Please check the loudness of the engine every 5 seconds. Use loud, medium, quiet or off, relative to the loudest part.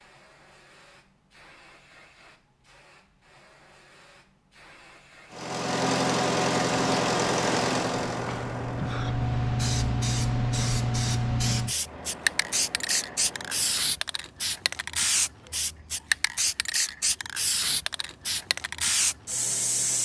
off, loud, quiet, off.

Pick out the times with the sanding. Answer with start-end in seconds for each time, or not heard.
not heard.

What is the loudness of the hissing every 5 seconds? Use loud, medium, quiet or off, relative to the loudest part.
quiet, loud, loud, loud.